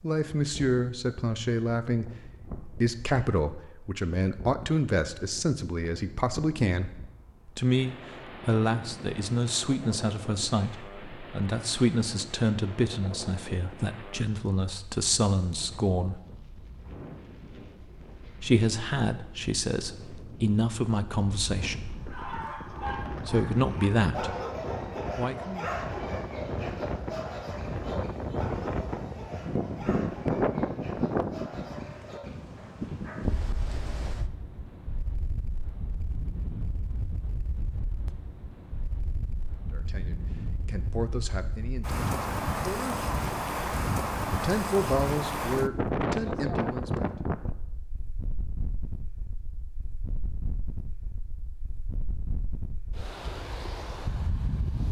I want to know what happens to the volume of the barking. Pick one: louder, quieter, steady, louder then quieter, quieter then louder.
quieter.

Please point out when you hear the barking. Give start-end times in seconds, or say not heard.
21.9-33.3.